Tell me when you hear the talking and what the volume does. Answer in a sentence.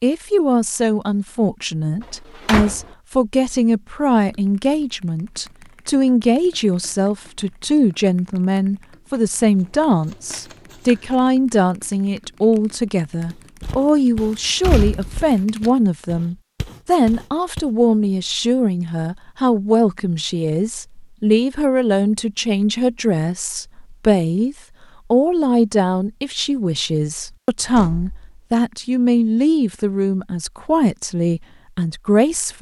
You can hear the talking from 0.0 to 32.5 s, at a steady volume.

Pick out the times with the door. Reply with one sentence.
You can hear the door from 2.0 to 2.9 s, from 14.2 to 15.3 s and from 27.7 to 28.2 s.